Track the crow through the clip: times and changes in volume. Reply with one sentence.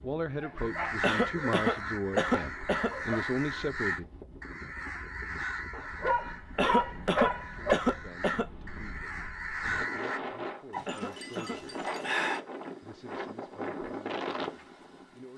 You can hear the crow from 0.6 to 10.2 s, getting quieter then louder.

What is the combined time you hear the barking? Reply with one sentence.
The barking can be heard for 7 seconds in total.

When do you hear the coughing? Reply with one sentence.
The coughing can be heard from 1.0 to 2.9 s, from 6.5 to 8.4 s and from 10.8 to 11.6 s.